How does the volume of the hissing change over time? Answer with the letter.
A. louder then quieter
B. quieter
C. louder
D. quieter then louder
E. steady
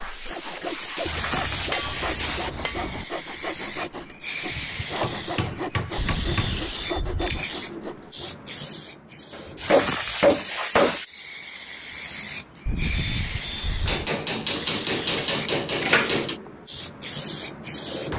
E.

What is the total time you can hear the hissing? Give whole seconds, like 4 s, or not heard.
18 s.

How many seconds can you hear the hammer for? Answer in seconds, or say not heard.
8 s.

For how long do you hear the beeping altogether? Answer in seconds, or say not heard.
3 s.